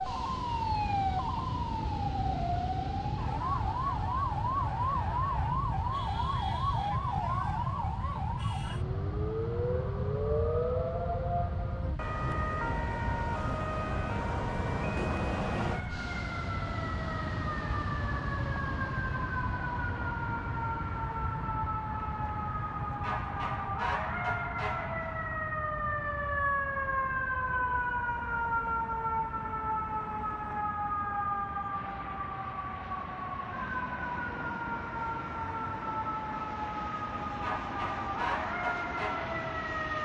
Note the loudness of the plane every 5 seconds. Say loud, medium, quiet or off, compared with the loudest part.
loud, loud, loud, loud, medium, medium, medium, medium.